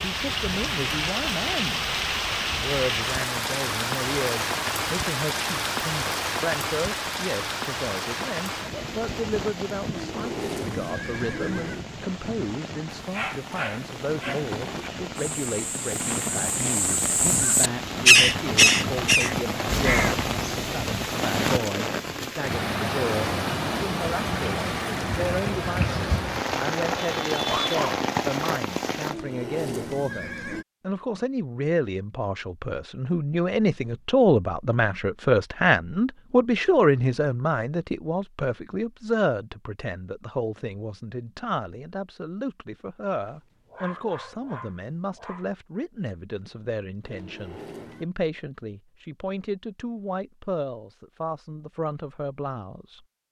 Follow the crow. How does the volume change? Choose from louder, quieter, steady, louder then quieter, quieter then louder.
louder then quieter.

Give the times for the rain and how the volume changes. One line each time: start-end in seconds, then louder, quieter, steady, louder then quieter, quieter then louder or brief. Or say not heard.
0.0-29.1 quieter then louder.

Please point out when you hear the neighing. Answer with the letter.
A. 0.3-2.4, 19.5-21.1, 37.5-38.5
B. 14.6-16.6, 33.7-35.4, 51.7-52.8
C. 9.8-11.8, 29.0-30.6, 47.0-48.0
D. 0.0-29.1
C.